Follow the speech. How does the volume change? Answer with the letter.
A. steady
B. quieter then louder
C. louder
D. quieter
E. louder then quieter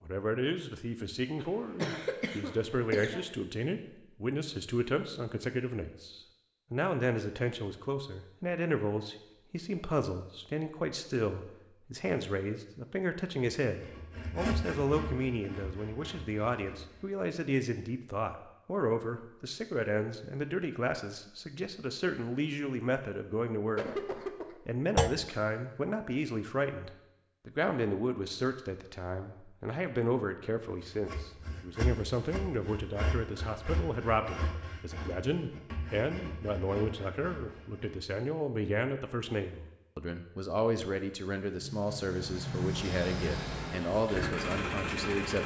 A.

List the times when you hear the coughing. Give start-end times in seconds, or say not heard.
1.4-3.2, 23.8-24.6.